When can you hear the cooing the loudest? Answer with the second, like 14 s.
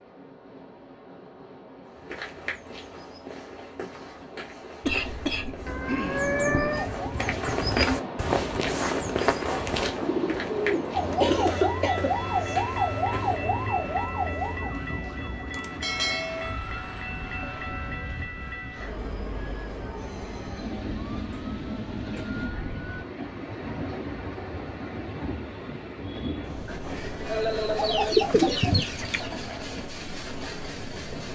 28 s.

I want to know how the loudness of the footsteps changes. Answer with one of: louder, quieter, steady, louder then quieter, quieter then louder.
louder then quieter.